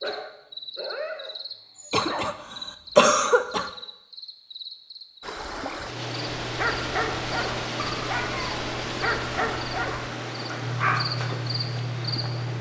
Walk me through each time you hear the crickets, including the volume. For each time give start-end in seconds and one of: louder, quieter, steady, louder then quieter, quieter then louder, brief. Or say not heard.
0.0-12.5 louder.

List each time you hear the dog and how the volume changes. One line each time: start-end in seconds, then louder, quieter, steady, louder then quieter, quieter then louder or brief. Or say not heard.
0.0-2.2 brief
6.4-11.2 steady.